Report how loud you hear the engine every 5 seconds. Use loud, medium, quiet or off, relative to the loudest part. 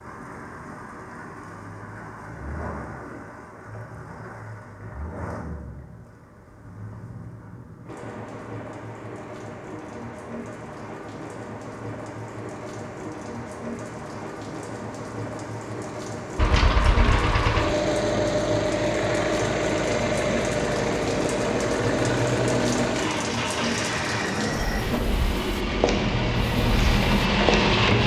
off, off, off, loud, loud, loud.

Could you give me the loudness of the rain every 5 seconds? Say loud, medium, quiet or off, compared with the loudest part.
medium, medium, medium, loud, loud, loud.